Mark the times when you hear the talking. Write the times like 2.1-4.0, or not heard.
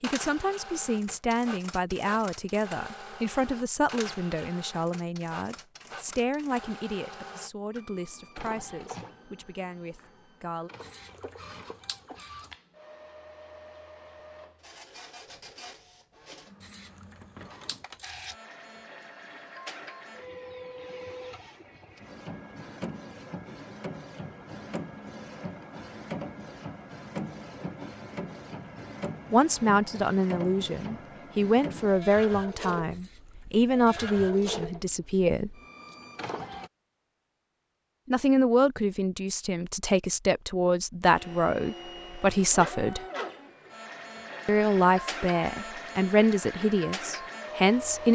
0.0-10.7, 29.3-35.5, 38.0-43.0, 44.5-48.1.